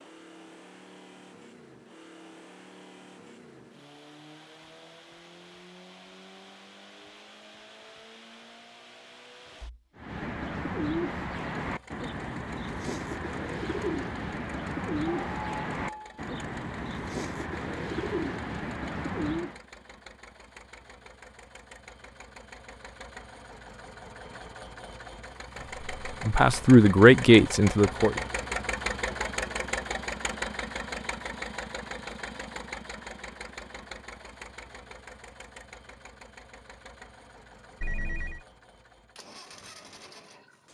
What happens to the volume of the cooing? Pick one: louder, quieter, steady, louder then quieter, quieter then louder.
steady.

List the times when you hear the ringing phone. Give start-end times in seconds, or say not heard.
15.1-16.2, 37.8-38.5.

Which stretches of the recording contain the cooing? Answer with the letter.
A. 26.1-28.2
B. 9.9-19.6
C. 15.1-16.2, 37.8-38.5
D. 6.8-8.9
B.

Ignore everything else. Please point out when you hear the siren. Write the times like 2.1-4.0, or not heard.
not heard.